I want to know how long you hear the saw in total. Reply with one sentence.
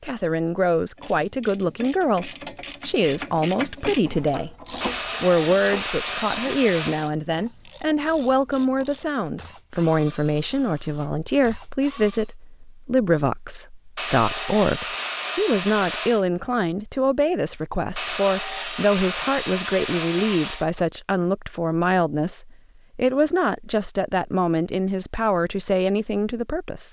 You can hear the saw for 7 seconds altogether.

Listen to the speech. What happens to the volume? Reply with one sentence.
The volume of the speech stays about the same.